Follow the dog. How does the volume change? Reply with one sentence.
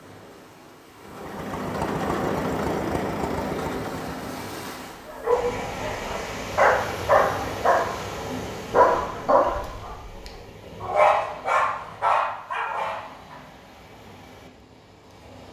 The loudness of the dog stays about the same.